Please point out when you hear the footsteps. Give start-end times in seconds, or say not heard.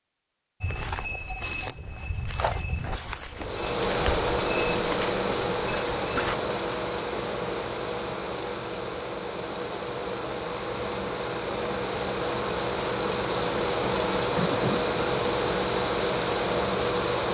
0.6-6.3.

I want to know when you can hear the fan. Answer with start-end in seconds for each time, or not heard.
3.3-17.2.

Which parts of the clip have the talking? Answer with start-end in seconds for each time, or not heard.
not heard.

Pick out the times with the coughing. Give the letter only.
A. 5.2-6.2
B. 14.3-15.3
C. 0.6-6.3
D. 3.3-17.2
B.